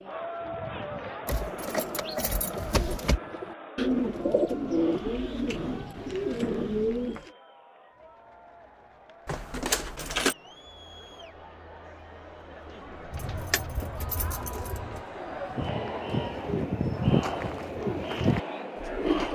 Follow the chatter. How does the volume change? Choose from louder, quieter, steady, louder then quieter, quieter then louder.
quieter then louder.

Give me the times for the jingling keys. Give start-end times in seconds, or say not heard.
1.2-3.2, 9.2-10.3, 13.1-15.0.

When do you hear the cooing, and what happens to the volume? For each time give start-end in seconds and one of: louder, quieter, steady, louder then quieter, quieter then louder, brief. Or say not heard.
0.0-7.3 louder
12.7-19.3 louder.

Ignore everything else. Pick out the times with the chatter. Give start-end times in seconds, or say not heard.
0.0-19.3.